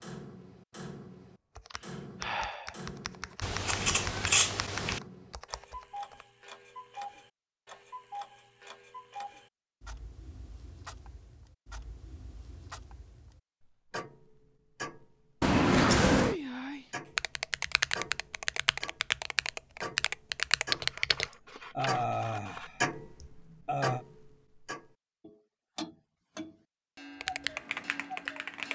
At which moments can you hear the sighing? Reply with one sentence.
The sighing can be heard from 1.7 to 2.8 s, from 15.9 to 16.9 s and from 21.3 to 24.1 s.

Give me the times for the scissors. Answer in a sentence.
The scissors can be heard from 3.4 to 5.0 s, from 15.4 to 16.4 s and from 20.7 to 22.7 s.